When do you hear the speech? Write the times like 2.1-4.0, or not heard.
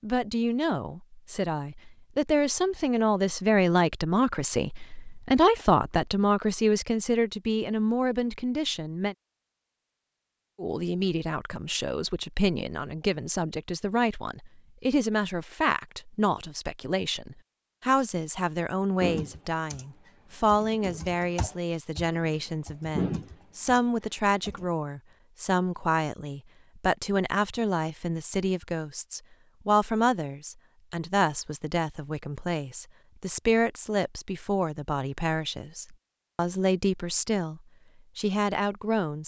0.0-9.2, 10.6-39.2.